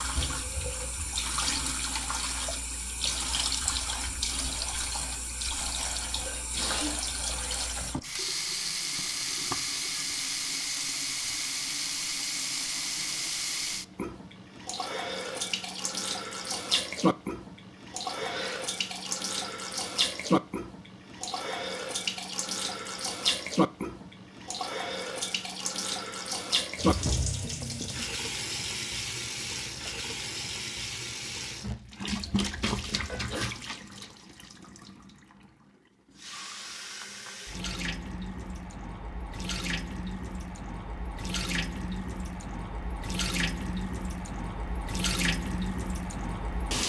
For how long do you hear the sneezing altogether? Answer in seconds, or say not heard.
3 s.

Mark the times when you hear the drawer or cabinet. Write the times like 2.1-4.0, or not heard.
not heard.